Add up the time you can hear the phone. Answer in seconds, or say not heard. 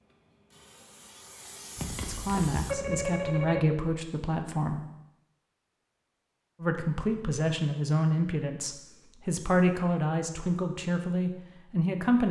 2 s.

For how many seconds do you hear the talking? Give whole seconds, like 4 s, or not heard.
8 s.